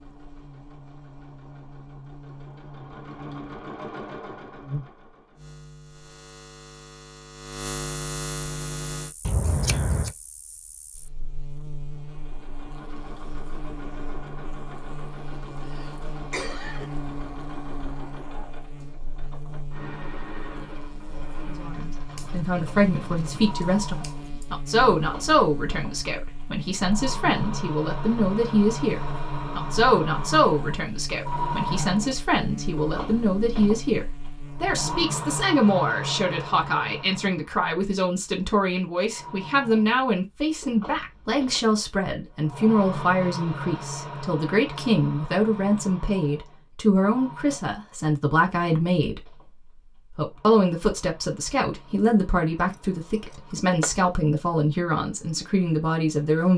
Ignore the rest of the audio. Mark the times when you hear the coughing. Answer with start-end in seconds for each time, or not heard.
15.7-16.9.